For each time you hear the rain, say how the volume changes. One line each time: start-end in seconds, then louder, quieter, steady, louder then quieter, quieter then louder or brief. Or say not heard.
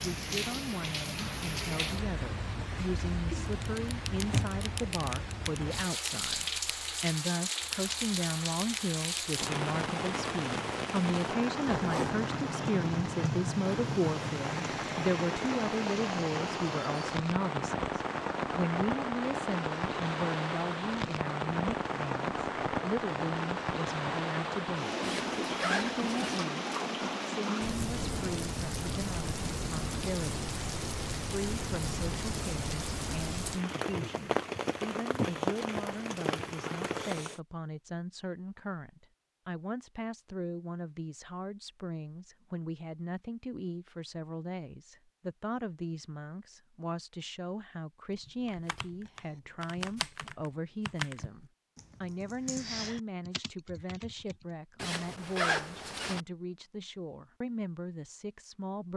0.0-37.4 steady.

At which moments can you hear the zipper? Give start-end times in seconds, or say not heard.
11.7-12.2, 25.0-26.4, 54.8-56.2.